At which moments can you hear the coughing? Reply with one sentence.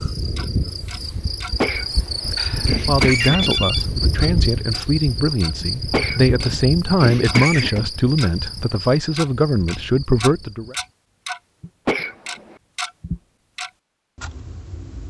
The coughing can be heard from 1.6 to 3.5 s, from 5.9 to 7.8 s and from 11.8 to 12.6 s.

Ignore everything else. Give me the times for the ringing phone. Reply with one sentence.
You can hear the ringing phone from 2.4 to 3.9 s.